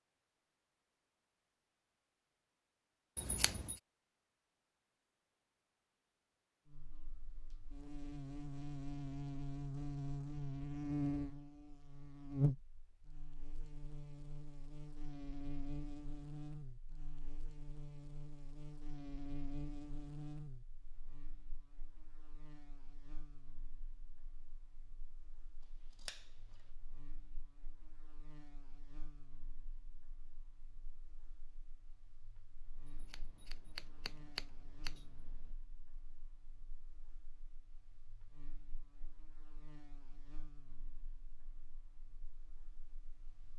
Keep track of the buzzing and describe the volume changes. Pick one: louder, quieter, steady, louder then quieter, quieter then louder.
quieter.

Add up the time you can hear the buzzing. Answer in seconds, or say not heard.
37 s.